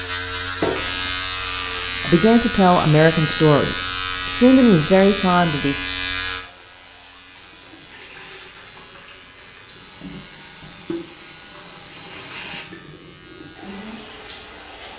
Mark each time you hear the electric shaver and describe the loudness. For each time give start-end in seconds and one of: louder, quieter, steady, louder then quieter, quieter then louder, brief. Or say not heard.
0.0-14.8 quieter.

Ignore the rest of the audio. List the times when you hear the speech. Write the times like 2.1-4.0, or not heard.
2.0-5.8.